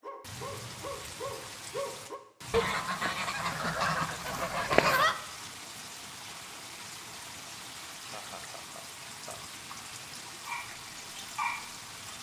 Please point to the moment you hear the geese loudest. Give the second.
5 s.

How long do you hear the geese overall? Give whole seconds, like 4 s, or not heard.
3 s.